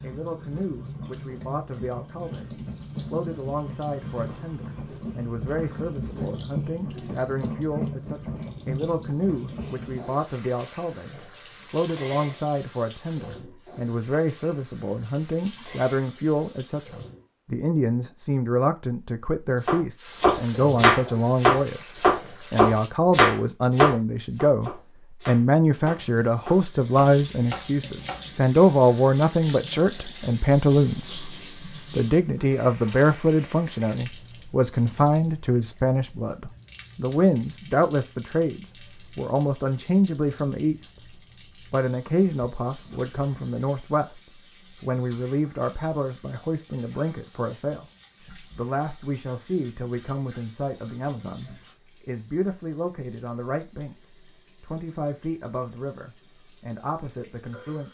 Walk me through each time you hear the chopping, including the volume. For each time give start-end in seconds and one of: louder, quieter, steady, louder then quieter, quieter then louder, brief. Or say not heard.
19.6-28.4 quieter.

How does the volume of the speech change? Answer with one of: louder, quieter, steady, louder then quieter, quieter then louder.
louder then quieter.